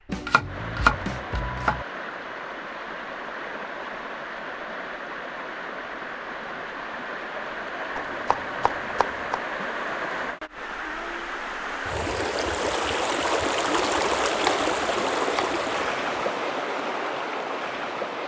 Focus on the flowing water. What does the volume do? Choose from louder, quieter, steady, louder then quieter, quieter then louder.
louder.